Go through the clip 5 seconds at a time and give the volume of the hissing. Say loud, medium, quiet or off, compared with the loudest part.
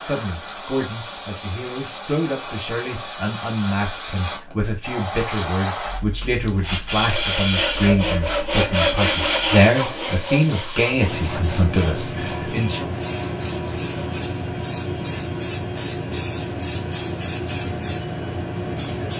medium, loud, loud, loud.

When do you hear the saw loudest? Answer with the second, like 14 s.
9 s.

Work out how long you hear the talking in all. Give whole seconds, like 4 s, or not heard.
13 s.